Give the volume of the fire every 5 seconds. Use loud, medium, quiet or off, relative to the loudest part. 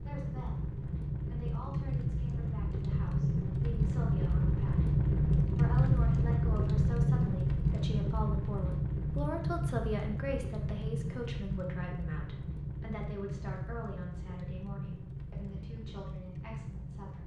loud, loud, medium, quiet.